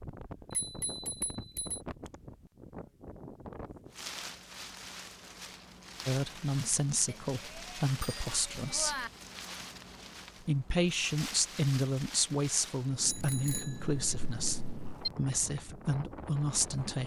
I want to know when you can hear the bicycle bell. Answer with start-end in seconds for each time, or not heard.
0.5-1.8, 7.0-9.1, 13.1-15.1.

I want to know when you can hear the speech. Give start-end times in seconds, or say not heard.
6.0-9.1, 10.4-17.0.